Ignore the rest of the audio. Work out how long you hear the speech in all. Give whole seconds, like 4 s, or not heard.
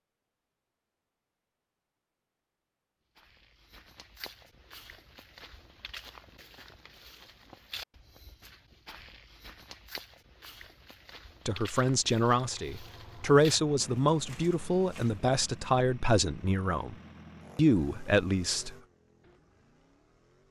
7 s.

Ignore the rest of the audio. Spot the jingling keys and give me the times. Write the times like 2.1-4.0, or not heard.
not heard.